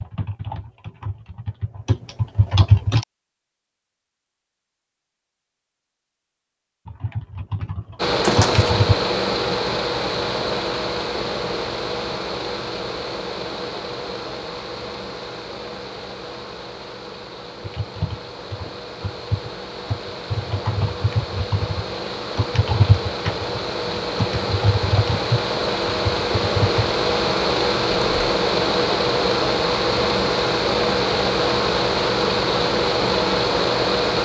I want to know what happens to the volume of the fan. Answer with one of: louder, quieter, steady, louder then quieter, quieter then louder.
quieter then louder.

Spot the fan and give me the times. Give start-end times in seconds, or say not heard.
8.0-34.2.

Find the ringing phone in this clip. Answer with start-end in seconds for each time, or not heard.
8.2-8.8.